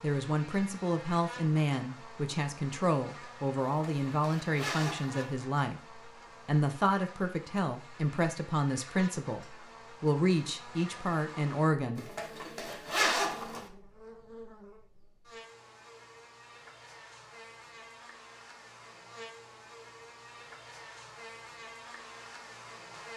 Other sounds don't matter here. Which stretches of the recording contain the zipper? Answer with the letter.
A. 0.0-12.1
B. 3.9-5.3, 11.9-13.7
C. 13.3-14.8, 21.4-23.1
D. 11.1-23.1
B.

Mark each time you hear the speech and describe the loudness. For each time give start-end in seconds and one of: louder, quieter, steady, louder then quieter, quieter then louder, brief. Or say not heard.
0.0-12.1 steady.